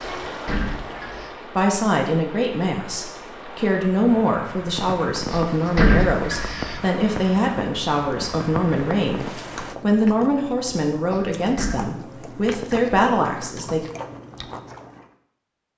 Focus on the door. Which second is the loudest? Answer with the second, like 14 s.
6 s.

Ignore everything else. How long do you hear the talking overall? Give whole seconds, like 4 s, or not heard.
12 s.